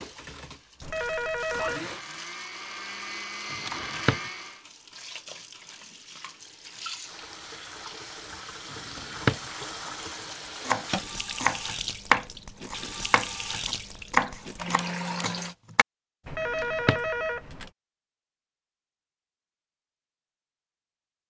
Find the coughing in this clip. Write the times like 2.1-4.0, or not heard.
not heard.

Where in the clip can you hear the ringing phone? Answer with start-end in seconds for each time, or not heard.
0.8-1.9, 16.2-17.7.